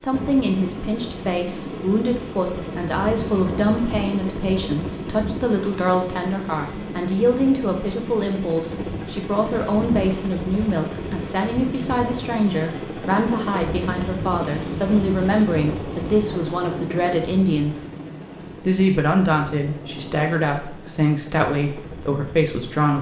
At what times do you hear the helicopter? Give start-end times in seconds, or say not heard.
0.0-22.9.